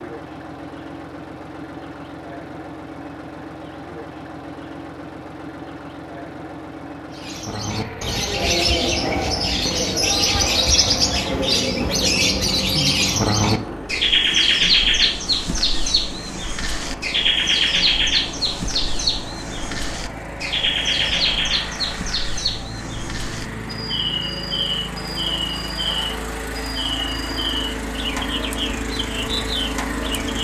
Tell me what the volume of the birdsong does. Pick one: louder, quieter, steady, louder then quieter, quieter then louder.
quieter.